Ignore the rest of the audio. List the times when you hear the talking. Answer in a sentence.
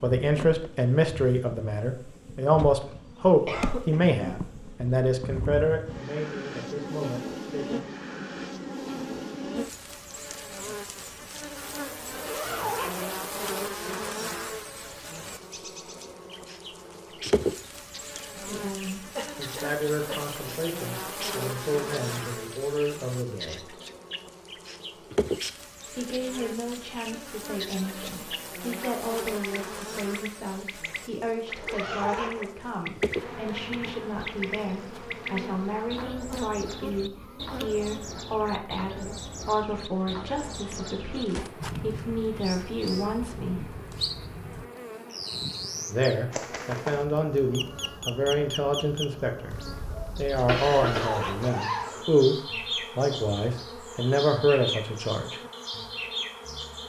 You can hear the talking from 0.0 to 7.8 s, from 18.4 to 23.8 s, from 25.9 to 43.7 s, from 45.9 to 49.5 s and from 50.1 to 55.4 s.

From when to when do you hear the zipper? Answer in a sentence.
You can hear the zipper from 12.1 to 13.1 s, from 31.4 to 32.5 s and from 50.7 to 52.0 s.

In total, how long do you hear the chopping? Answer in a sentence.
The chopping can't be heard in this clip.